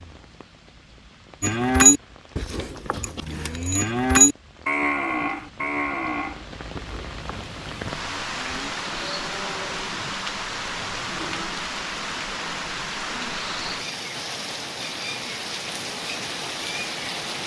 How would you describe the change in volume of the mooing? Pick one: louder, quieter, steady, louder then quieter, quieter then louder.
quieter.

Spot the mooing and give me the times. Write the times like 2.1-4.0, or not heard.
1.4-11.5.